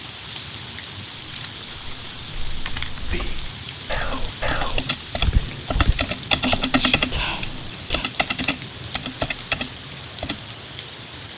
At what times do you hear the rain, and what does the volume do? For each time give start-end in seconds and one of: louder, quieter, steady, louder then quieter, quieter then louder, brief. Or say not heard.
0.0-11.3 steady.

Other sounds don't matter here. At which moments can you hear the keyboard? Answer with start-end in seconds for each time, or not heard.
1.2-10.4.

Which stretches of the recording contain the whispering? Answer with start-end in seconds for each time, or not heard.
3.0-8.1.